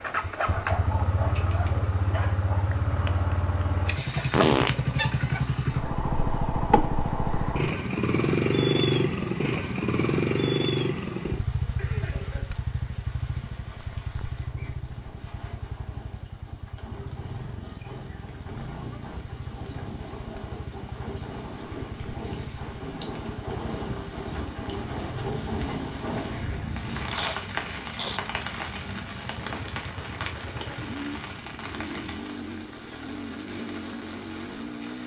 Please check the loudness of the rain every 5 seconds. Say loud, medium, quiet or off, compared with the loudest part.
quiet, quiet, quiet, medium, loud, loud, medium.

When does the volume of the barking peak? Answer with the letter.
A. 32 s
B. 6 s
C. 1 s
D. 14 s
C.